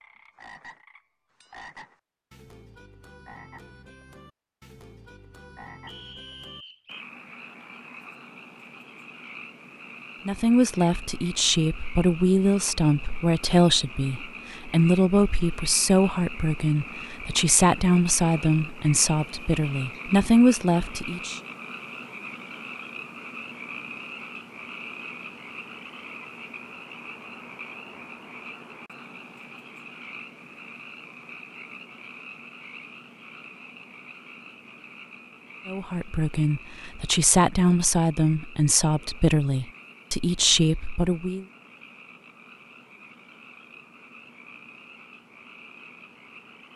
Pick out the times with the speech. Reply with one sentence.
The speech can be heard from 10.2 to 21.4 s and from 35.6 to 41.5 s.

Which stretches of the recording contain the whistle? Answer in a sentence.
You can hear the whistle from 5.8 to 7.0 s.